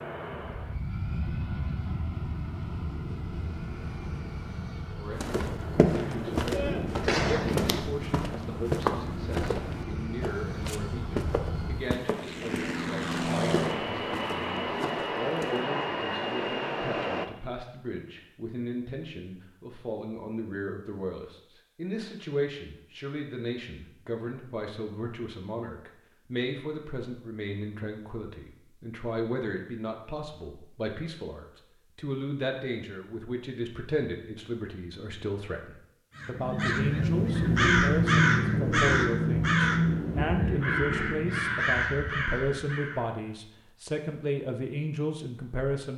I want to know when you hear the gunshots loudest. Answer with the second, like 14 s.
7 s.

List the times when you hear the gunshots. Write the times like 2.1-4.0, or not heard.
5.8-7.8.